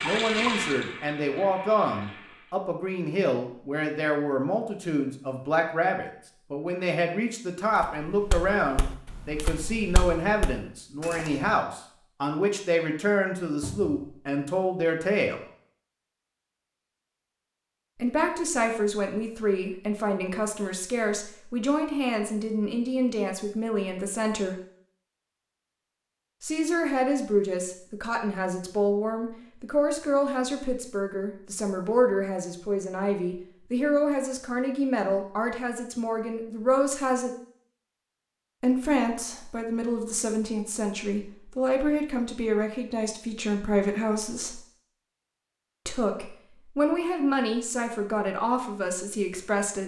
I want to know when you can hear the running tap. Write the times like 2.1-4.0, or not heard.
0.0-2.5.